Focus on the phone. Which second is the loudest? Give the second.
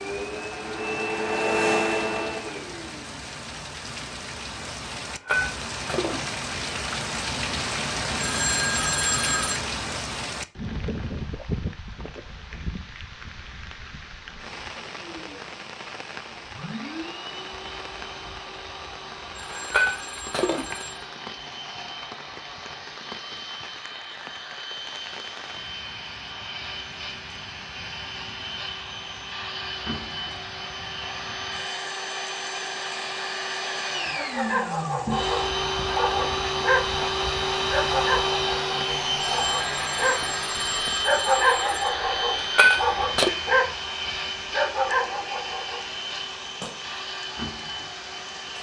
9 s.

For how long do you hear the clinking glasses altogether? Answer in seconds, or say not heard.
4 s.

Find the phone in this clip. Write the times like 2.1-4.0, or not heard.
8.2-9.6, 19.4-21.0, 39.4-41.9.